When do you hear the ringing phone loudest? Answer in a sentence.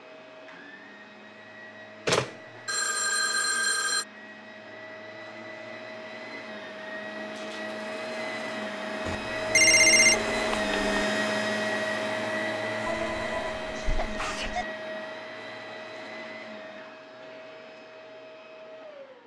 The loudest moment of the ringing phone is at 10 seconds.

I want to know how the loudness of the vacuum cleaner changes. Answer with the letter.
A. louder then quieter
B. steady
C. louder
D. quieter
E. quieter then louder
A.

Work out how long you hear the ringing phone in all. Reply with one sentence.
You can hear the ringing phone for 6 seconds altogether.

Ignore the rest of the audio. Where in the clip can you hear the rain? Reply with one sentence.
You can't hear the rain here.